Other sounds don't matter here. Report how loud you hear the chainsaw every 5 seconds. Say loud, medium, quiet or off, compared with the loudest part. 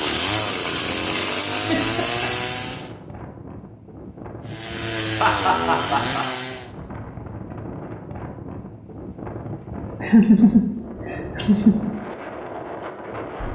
loud, loud, off.